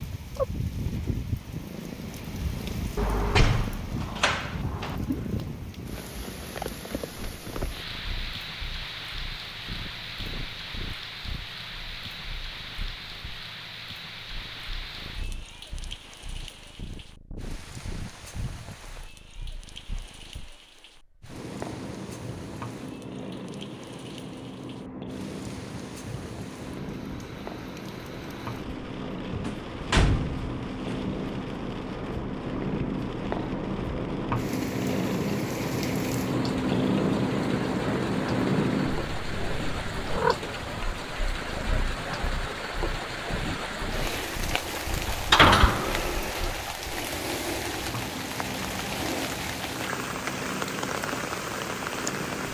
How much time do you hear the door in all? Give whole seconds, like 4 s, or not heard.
5 s.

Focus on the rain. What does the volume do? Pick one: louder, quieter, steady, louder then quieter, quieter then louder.
quieter then louder.